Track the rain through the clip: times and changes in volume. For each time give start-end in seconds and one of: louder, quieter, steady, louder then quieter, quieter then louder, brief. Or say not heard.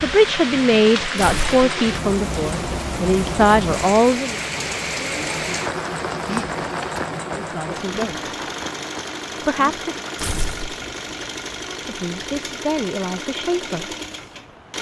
0.0-14.7 quieter.